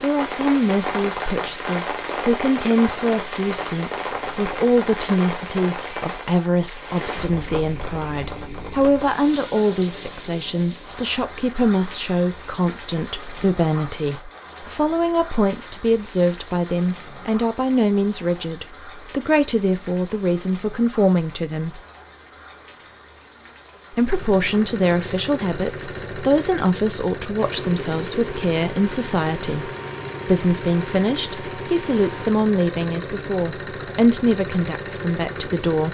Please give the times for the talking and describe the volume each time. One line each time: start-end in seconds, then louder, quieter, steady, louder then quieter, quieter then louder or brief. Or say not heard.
0.0-21.8 steady
23.9-35.8 steady.